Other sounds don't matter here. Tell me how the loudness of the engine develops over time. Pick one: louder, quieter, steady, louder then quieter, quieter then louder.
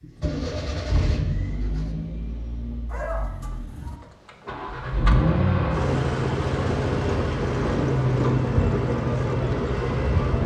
quieter then louder.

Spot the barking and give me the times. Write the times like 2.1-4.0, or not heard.
2.9-4.0.